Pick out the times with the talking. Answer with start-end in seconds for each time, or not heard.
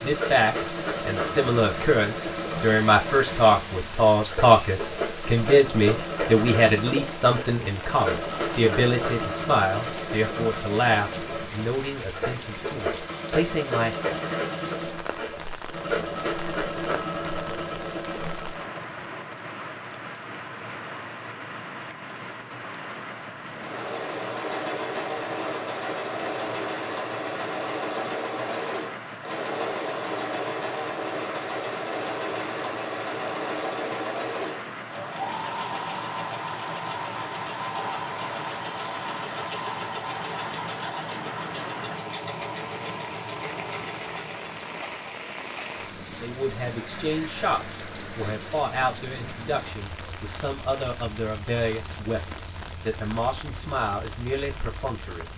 0.0-14.1, 46.2-55.2.